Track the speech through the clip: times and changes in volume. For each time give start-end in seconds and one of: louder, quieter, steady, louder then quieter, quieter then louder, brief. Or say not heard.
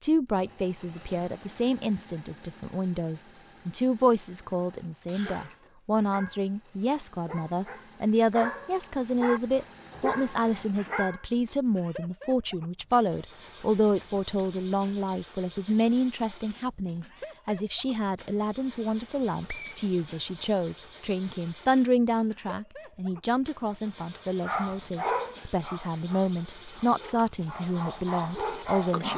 0.0-29.1 steady.